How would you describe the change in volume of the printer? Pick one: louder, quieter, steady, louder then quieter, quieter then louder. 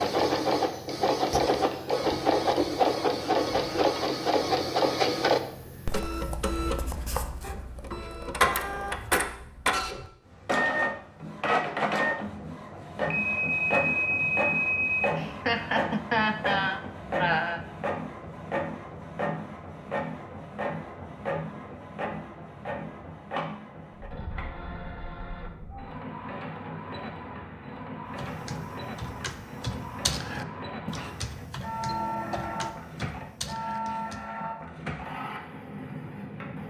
quieter.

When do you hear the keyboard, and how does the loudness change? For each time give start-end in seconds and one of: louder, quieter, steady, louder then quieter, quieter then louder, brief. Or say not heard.
28.1-34.3 louder then quieter.